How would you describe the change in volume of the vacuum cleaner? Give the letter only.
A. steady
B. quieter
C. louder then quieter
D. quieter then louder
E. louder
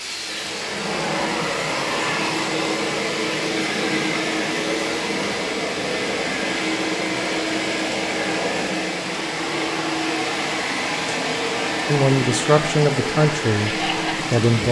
A.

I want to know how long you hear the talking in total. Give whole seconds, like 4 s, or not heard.
3 s.